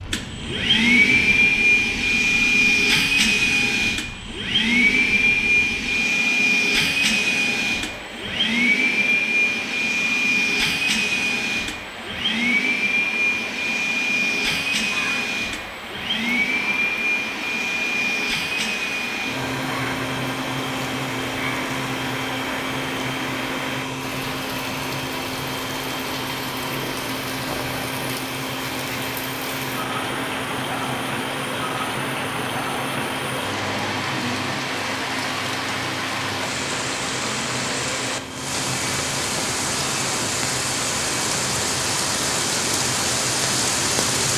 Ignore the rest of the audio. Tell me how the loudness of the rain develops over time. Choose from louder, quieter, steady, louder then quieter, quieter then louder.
louder.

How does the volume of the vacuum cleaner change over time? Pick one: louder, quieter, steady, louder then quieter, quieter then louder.
quieter.